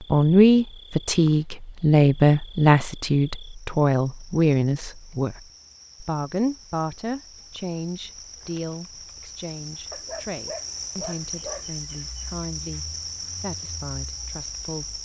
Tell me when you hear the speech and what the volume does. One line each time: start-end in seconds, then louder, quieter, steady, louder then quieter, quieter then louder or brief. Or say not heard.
0.1-15.0 quieter.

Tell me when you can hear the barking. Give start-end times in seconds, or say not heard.
9.9-11.7.